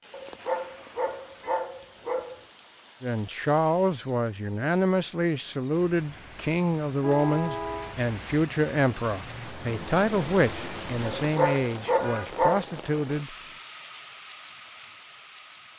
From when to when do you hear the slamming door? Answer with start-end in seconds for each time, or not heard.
not heard.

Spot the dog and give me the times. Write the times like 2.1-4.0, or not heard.
0.1-2.4, 11.2-12.7.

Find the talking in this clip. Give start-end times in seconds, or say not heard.
3.0-13.3.